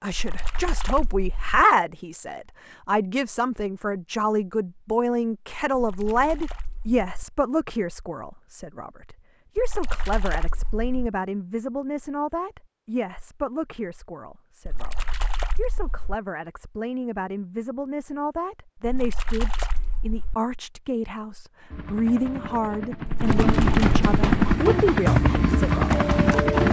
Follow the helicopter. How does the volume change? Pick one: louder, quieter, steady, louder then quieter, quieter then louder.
louder.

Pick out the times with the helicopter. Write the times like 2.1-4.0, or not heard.
21.7-26.6.